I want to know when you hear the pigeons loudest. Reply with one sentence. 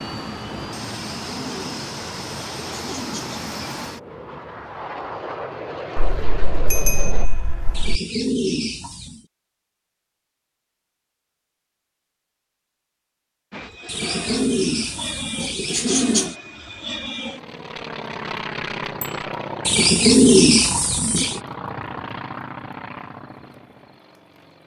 The loudest moment of the pigeons is at 20 seconds.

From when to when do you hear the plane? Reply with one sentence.
The plane can be heard from 0.0 to 7.3 s and from 13.5 to 24.6 s.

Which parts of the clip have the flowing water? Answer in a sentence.
You can't hear the flowing water here.